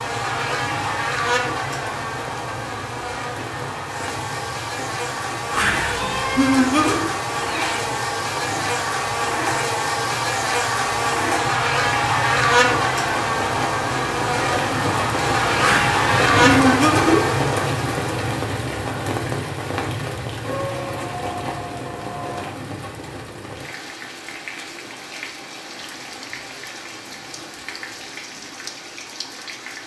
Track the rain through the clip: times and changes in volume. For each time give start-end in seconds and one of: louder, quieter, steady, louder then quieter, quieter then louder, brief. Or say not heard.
0.0-29.8 louder then quieter.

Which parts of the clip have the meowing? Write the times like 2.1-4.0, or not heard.
5.5-7.0, 15.6-17.2.